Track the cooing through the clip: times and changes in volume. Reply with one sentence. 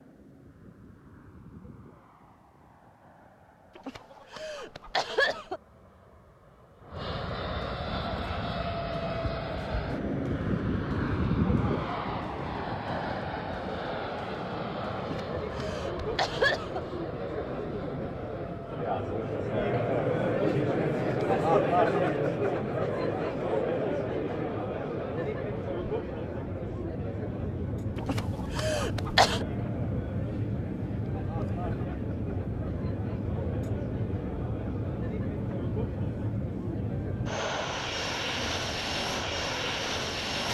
The cooing can't be heard in this clip.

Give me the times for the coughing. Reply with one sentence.
You can hear the coughing from 3.8 to 5.6 s, from 14.9 to 16.8 s and from 27.9 to 29.4 s.